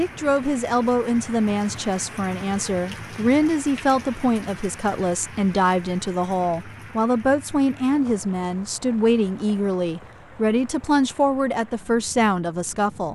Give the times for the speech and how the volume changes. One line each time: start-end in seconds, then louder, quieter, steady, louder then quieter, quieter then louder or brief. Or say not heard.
0.0-13.1 steady.